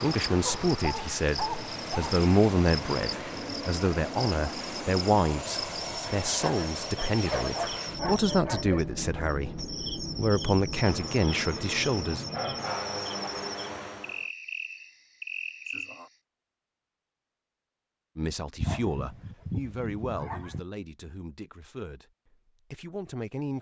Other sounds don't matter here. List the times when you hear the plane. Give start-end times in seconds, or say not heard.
0.0-14.3.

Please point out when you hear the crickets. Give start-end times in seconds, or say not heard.
0.0-16.1.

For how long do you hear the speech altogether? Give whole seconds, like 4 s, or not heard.
17 s.